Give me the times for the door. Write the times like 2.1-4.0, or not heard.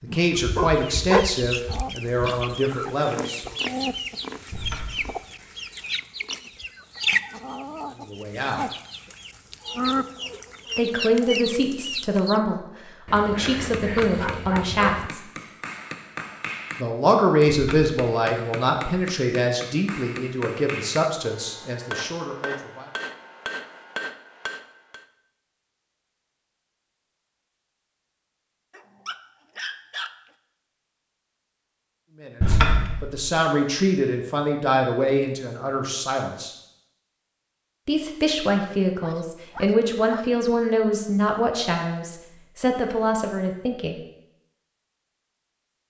4.5-5.2, 17.4-17.9, 32.4-33.3.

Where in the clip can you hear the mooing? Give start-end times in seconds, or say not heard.
not heard.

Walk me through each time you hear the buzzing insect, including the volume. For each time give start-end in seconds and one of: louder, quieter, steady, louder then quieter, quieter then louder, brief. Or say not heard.
not heard.